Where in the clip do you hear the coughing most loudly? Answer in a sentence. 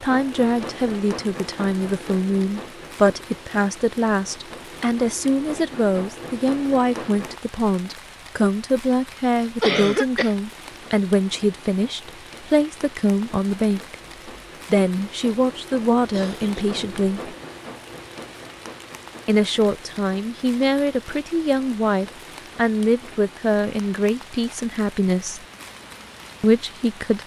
The loudest moment of the coughing is at 10 seconds.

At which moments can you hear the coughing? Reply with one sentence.
You can hear the coughing from 9.6 to 10.3 s and from 16.1 to 16.8 s.